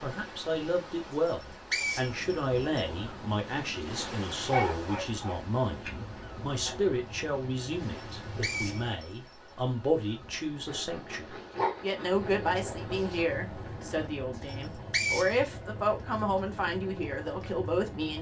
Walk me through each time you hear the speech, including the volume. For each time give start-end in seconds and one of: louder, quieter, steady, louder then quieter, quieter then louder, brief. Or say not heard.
0.0-18.1 steady.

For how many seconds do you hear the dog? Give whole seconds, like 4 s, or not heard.
5 s.